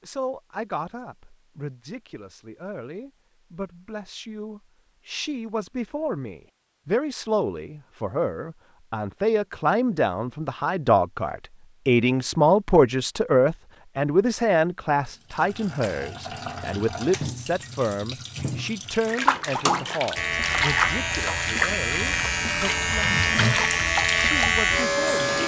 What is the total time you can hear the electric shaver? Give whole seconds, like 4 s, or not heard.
5 s.